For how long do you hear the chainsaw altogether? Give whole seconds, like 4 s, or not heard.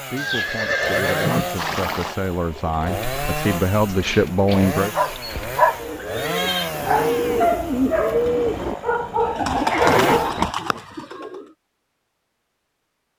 10 s.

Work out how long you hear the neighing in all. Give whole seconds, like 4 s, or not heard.
4 s.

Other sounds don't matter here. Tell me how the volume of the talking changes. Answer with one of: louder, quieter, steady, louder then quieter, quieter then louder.
louder.